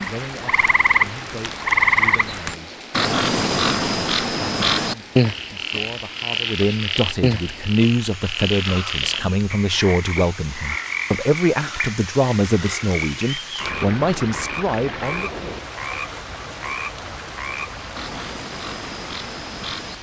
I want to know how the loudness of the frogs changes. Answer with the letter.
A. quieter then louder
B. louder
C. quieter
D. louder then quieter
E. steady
C.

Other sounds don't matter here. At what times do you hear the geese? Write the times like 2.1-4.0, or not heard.
not heard.